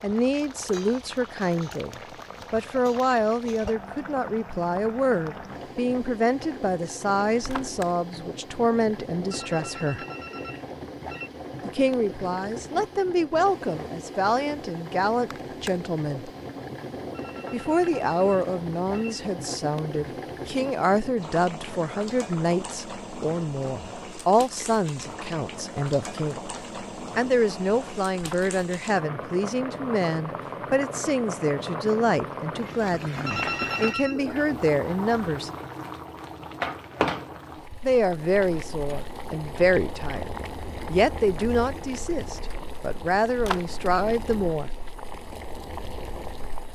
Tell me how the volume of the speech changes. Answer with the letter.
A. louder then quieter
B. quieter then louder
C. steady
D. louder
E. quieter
C.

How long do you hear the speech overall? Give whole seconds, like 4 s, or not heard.
39 s.